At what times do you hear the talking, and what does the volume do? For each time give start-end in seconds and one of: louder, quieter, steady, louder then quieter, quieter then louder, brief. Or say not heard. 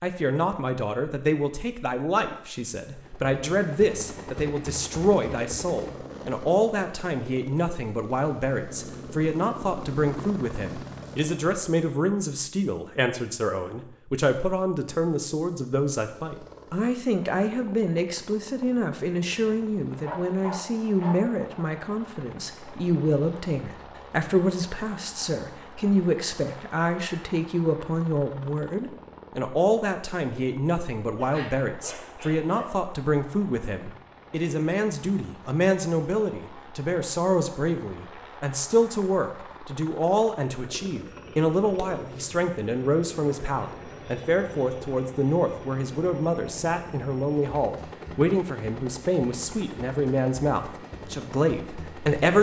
0.0-52.3 steady.